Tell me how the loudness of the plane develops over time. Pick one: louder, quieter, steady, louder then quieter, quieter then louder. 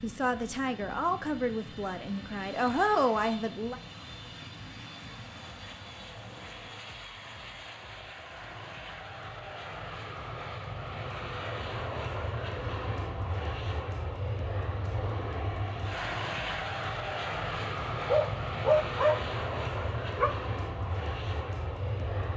louder.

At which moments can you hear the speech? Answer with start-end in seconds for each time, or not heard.
0.0-3.8.